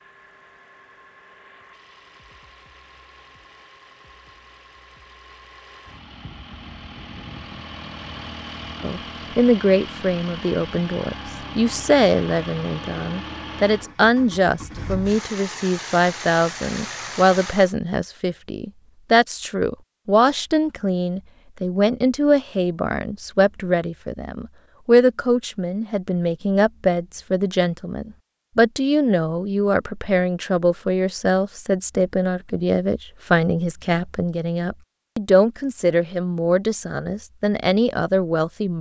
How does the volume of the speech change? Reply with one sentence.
The loudness of the speech stays about the same.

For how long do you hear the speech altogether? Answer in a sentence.
The speech can be heard for 30 seconds in total.